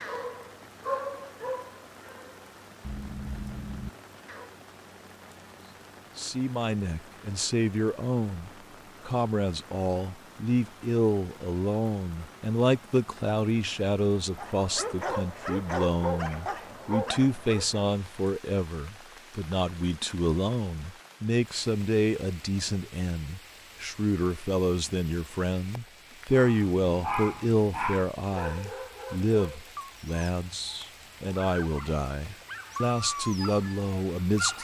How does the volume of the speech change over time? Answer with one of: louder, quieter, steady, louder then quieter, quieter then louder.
steady.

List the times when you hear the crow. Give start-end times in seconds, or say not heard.
not heard.